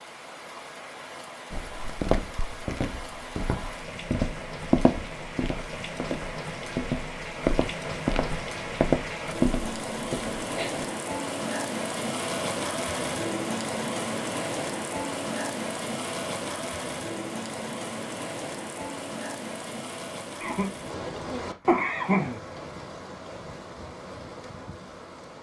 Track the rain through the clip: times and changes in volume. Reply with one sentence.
You can hear the rain from 0.0 to 25.3 s, getting louder then quieter.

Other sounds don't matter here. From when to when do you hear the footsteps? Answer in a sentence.
You can hear the footsteps from 1.5 to 10.8 s.